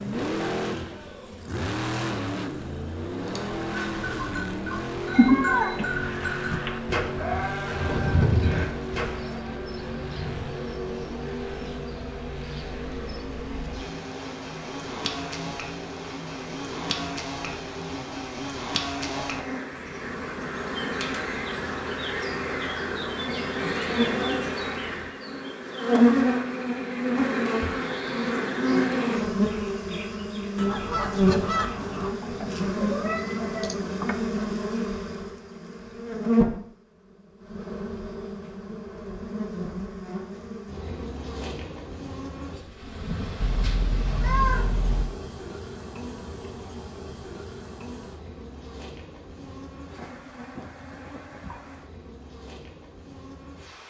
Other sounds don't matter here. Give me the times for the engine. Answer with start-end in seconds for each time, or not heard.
0.0-25.1.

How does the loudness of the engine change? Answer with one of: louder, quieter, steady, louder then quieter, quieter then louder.
quieter.